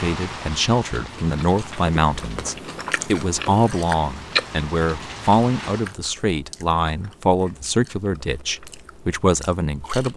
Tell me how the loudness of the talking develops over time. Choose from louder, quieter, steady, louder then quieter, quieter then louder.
steady.